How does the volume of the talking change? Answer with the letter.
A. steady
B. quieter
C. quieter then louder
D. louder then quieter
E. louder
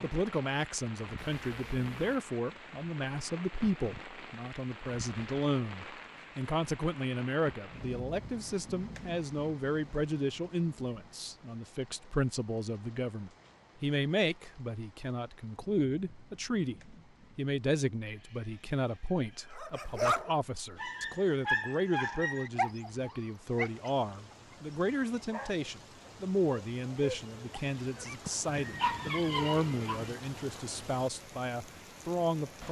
A.